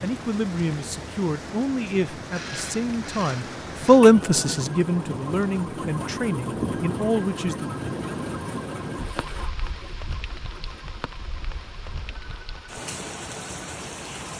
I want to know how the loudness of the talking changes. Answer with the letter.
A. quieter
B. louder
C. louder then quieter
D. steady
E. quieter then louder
C.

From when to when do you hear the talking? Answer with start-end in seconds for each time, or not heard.
0.0-7.7.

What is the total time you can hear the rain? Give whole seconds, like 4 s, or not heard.
14 s.